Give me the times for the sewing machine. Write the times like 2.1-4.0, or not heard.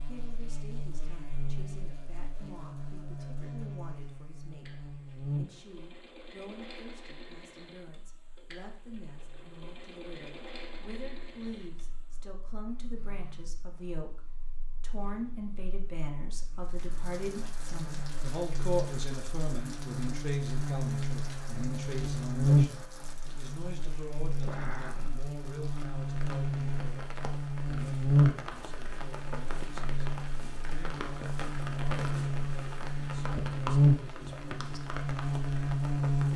0.1-12.2.